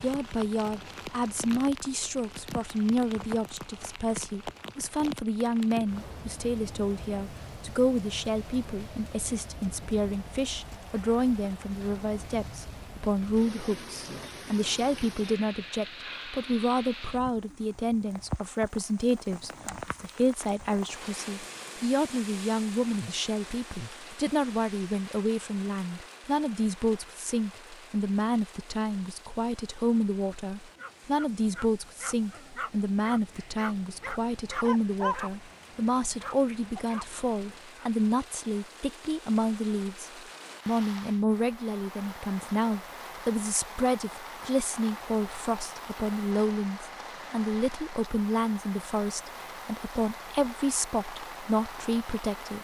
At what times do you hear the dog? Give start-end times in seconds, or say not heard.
30.8-37.9.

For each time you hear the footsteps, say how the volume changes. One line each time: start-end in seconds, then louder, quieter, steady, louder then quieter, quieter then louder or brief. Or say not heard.
not heard.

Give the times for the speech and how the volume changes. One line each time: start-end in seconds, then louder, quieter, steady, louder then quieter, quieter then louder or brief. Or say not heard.
0.0-52.5 steady.